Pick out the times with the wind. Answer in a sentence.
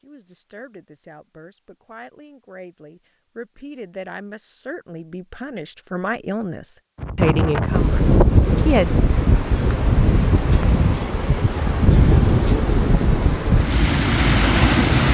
The wind can be heard from 7.0 to 15.0 s.